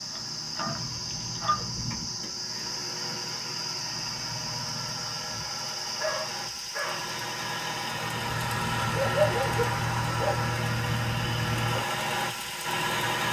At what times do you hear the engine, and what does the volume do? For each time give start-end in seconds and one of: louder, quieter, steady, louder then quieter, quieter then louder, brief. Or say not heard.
0.0-13.2 louder.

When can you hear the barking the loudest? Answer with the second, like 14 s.
9 s.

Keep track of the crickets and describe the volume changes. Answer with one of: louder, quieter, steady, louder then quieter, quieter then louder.
quieter.